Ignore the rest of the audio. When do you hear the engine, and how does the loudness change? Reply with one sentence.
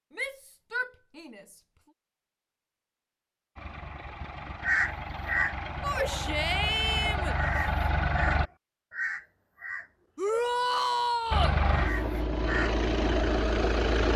You can hear the engine from 3.5 to 8.5 s, getting louder; and briefly from 11.3 to 14.1 s.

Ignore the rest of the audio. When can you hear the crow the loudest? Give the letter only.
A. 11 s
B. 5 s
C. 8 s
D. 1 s
B.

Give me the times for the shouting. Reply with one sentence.
You can hear the shouting from 0.1 to 1.6 s, from 5.8 to 7.3 s and from 10.2 to 11.6 s.